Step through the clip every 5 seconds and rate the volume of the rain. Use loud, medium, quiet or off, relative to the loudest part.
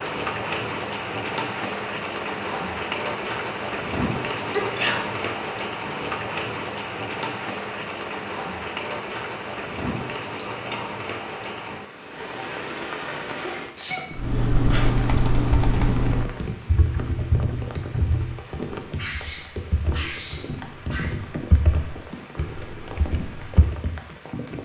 loud, loud, medium, medium, medium.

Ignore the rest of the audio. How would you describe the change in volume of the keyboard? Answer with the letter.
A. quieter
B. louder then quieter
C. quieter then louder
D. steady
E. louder
A.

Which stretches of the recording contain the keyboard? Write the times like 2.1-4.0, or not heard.
14.2-23.8.